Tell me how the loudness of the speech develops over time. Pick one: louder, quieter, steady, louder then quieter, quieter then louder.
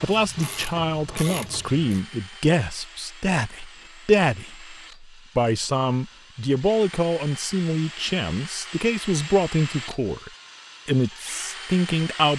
steady.